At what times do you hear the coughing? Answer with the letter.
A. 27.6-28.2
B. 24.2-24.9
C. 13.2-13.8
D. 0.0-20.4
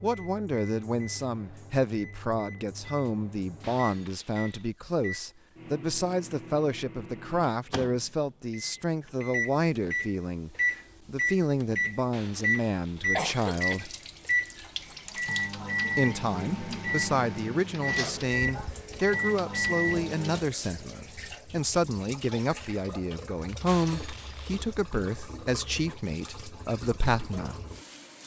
C.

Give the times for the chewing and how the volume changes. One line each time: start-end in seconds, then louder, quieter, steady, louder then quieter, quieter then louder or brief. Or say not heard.
not heard.